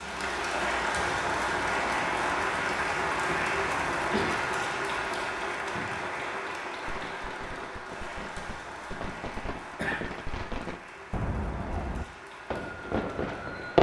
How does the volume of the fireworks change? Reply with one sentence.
The loudness of the fireworks goes up.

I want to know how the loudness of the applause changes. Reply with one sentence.
The loudness of the applause goes down.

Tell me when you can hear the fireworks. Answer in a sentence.
You can hear the fireworks from 5.7 to 13.7 s.